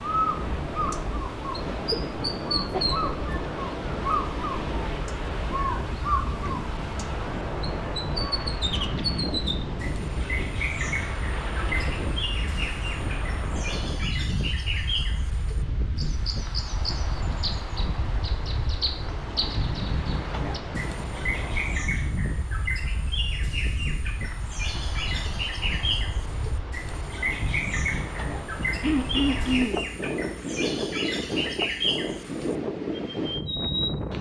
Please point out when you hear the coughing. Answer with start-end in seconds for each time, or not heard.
1.6-3.1, 28.8-29.9.